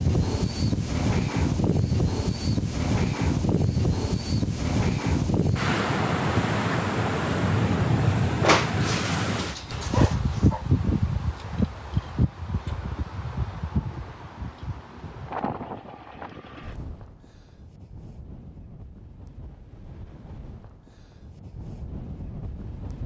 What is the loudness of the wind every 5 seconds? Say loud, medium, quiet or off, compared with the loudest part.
loud, loud, loud, quiet, quiet.